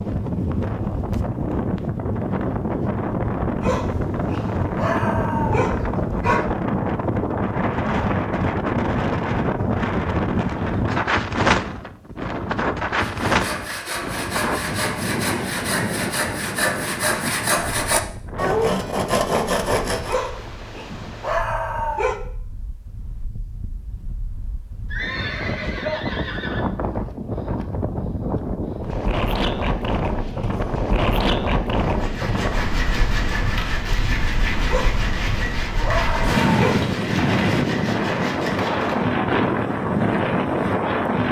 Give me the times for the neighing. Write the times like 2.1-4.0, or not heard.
24.9-26.6.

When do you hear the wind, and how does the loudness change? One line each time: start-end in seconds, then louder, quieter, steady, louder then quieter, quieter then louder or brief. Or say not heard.
0.0-41.2 quieter then louder.